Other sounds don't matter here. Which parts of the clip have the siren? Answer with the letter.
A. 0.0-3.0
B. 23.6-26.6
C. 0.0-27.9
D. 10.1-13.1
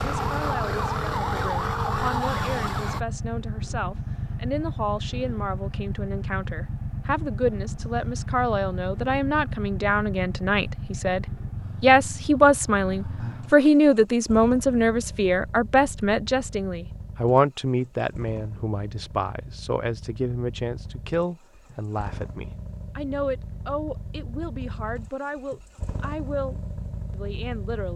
A.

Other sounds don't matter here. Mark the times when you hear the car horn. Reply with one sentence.
The car horn can't be heard in this clip.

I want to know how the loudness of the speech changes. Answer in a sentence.
The loudness of the speech goes up, then down.